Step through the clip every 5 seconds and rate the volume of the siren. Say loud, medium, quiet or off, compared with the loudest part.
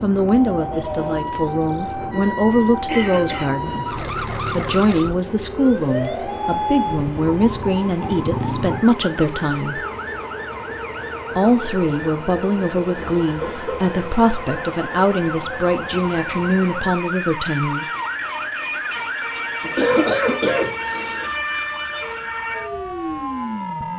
loud, loud, medium, loud, loud.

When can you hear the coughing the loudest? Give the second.
20 s.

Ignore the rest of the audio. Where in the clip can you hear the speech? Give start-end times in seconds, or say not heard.
0.0-9.8, 11.3-17.9.